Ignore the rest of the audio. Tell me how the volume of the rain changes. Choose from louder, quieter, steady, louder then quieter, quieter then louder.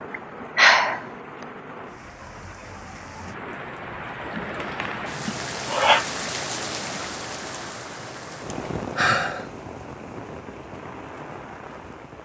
louder then quieter.